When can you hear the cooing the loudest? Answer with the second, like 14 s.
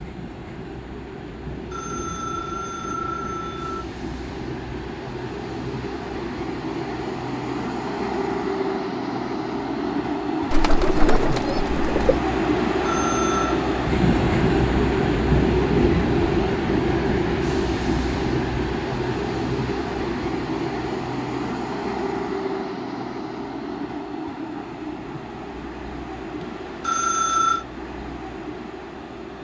11 s.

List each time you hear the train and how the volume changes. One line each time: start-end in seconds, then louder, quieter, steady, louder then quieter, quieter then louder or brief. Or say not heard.
0.0-29.3 louder then quieter.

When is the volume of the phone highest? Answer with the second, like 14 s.
27 s.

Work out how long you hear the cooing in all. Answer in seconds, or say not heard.
2 s.